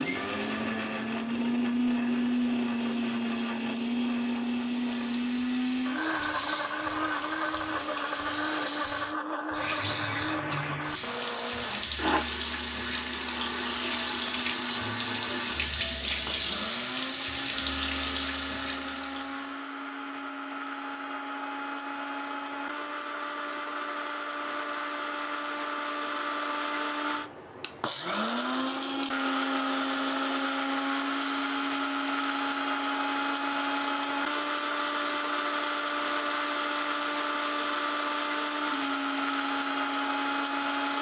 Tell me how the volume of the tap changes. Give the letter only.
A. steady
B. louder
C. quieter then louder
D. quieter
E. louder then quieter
B.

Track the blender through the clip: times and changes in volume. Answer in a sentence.
The blender can be heard from 0.0 to 40.9 s, getting quieter then louder.